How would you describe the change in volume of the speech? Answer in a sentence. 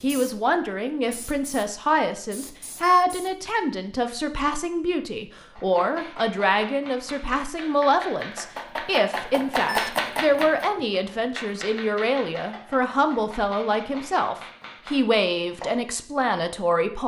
The volume of the speech stays about the same.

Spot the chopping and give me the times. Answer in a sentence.
You can hear the chopping from 5.5 to 15.8 s.